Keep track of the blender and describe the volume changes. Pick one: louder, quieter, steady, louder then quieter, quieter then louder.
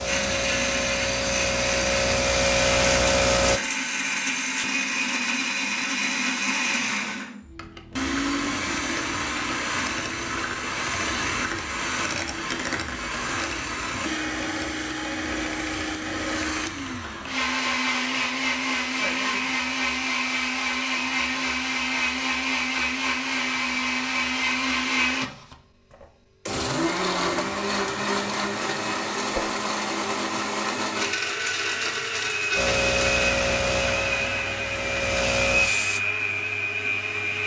steady.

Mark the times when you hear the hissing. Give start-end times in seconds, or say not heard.
0.0-3.6, 32.5-36.0.